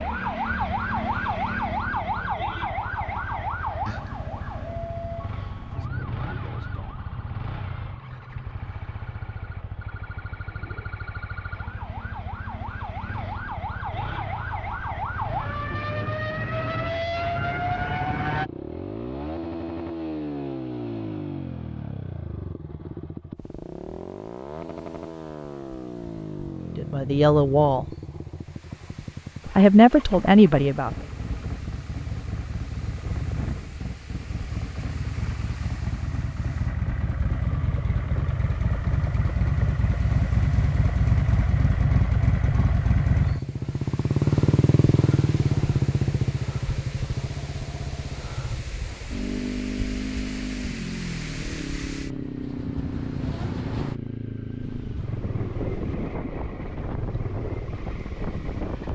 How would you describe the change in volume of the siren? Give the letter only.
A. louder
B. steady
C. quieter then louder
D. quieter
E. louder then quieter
C.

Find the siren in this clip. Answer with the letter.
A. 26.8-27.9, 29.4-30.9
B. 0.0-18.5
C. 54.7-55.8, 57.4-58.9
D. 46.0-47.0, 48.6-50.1
B.